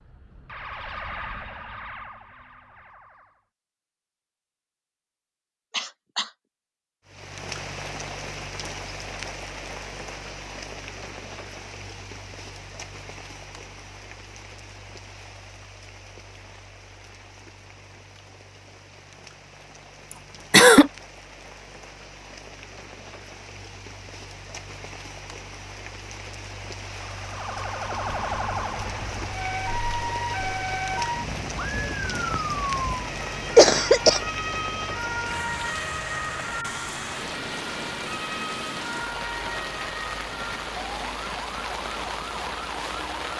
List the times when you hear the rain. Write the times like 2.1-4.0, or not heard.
7.0-43.3.